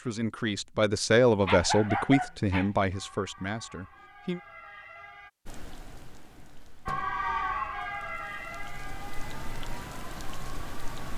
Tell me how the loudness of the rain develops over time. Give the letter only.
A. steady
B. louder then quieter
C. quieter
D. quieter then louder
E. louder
D.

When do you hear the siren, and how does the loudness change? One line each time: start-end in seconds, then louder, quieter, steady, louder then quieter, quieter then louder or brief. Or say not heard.
2.9-5.3 brief
6.8-11.1 quieter.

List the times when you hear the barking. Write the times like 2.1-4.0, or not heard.
1.4-2.7.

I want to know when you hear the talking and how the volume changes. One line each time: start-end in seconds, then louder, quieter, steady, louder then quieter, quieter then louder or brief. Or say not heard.
0.0-4.4 louder then quieter.